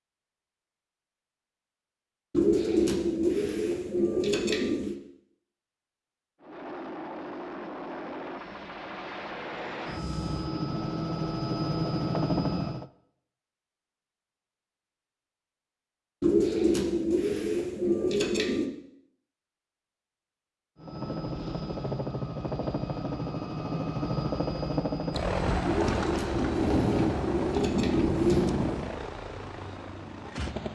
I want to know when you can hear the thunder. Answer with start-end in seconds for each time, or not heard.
26.4-28.9.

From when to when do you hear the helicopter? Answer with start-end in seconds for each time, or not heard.
6.4-12.9, 20.8-30.7.